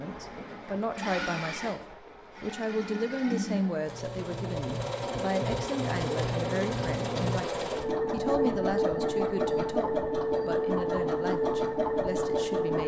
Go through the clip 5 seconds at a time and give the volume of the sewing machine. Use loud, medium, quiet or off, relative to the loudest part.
medium, loud, loud.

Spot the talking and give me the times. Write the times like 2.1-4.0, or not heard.
0.0-1.8, 2.4-12.8.